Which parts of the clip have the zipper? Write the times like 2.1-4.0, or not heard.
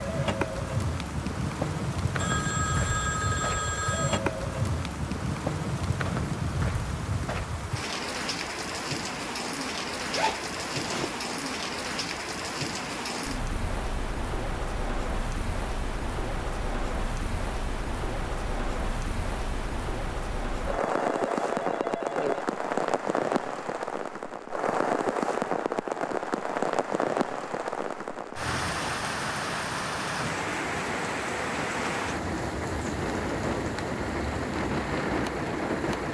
10.1-11.1.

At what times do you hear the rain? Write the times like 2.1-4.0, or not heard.
0.0-36.0.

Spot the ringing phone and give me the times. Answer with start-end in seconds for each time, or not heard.
2.1-4.2, 20.6-22.4.